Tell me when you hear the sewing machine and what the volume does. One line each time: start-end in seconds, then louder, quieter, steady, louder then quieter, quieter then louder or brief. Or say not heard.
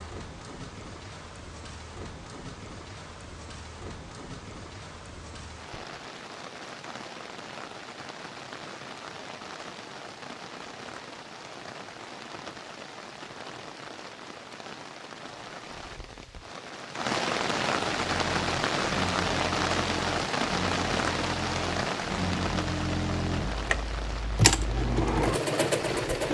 17.9-26.2 louder.